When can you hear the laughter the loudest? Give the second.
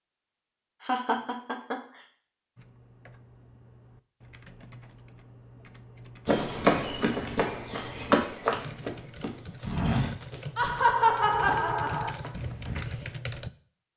11 s.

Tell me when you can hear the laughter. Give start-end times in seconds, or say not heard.
0.8-1.8, 10.6-12.2.